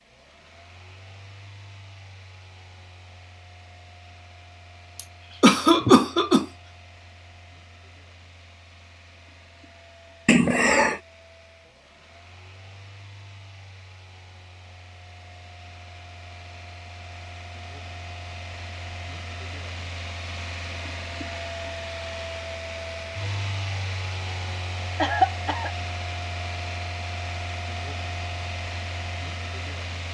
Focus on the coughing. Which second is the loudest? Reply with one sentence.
The loudest moment of the coughing is at 6 seconds.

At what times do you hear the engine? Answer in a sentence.
You can hear the engine from 0.0 to 30.0 s.